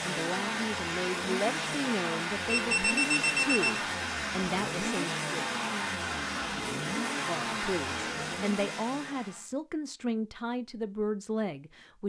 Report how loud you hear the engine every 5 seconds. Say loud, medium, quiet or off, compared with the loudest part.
loud, loud, off.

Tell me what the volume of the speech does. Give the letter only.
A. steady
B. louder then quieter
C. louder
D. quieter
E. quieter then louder
A.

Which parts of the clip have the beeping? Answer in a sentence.
The beeping can be heard from 2.5 to 3.8 s.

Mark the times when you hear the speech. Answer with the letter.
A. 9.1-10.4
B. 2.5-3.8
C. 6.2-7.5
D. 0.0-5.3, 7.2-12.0
D.